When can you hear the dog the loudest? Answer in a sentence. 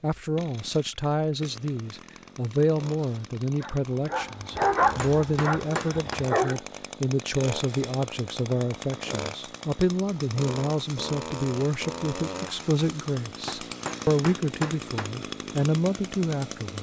The volume of the dog peaks at 5 seconds.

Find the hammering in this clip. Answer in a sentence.
You can hear the hammering from 4.6 to 6.2 s and from 13.4 to 15.1 s.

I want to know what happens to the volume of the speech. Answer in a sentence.
The volume of the speech stays about the same.